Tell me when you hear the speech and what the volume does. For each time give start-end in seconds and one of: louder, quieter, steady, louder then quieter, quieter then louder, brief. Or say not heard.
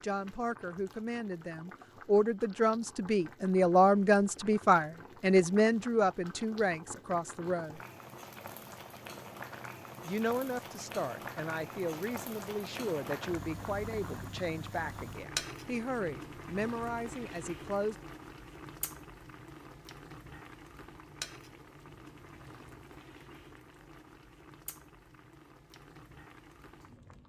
0.0-7.8 louder then quieter
10.0-17.9 steady.